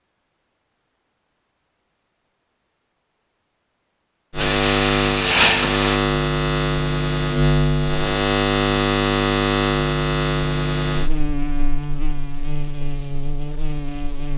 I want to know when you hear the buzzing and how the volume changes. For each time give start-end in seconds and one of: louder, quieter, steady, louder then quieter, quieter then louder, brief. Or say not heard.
4.3-14.3 quieter.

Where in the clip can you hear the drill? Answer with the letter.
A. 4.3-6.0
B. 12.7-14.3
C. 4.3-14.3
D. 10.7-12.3
A.